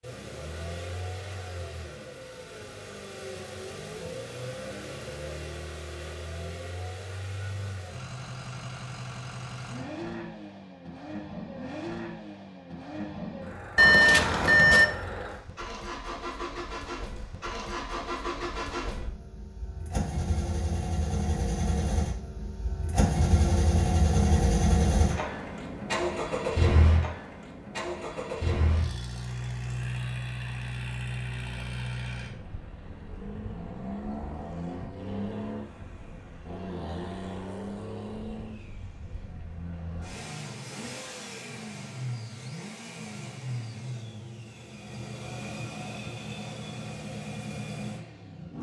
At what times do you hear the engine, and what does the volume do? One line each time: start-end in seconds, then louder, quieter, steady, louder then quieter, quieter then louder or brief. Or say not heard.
0.0-48.5 louder then quieter.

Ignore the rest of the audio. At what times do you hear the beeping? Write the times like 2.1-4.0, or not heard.
13.8-14.8.